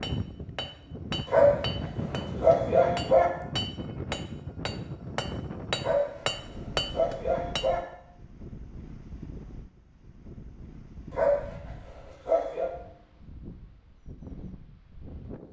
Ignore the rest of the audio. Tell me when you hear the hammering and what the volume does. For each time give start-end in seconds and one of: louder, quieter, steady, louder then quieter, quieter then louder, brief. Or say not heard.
0.0-7.7 louder.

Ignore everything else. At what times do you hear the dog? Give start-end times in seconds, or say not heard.
1.2-3.2, 5.8-7.8, 11.1-12.7.